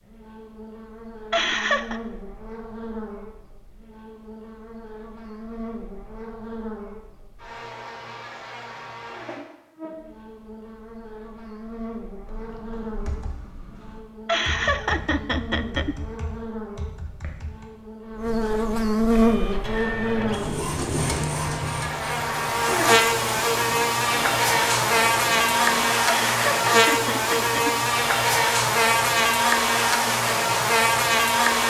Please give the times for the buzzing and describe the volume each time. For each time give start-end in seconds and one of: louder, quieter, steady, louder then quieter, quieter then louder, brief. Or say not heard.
0.0-31.6 louder.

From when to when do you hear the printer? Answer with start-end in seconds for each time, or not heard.
19.1-25.9.